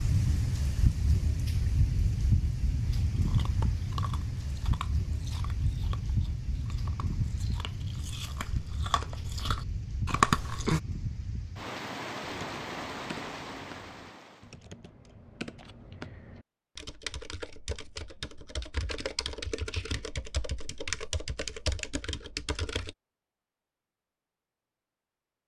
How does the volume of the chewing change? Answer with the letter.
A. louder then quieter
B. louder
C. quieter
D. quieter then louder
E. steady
D.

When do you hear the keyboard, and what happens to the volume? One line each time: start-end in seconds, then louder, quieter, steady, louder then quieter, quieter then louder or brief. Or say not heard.
12.2-22.9 louder.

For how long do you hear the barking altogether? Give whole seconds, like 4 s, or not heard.
not heard.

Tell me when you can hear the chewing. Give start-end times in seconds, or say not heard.
3.0-10.8.